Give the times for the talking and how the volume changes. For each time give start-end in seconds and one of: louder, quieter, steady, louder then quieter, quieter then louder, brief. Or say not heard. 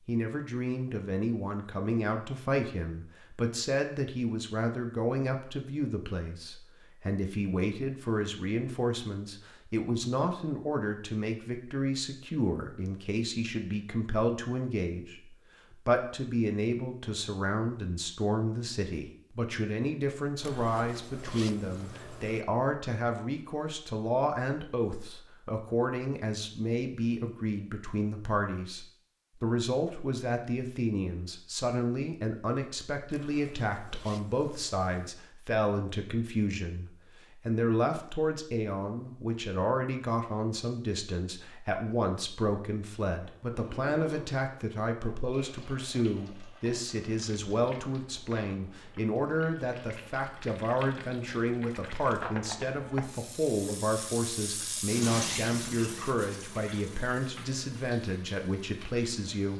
0.1-59.5 steady.